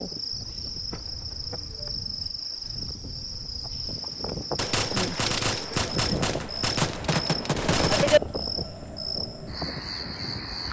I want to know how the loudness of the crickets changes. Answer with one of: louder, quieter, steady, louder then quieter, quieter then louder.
steady.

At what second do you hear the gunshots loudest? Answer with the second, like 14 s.
8 s.